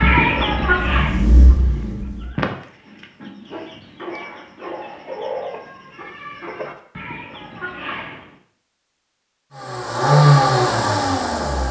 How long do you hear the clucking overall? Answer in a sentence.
The clucking can be heard for 8 seconds in total.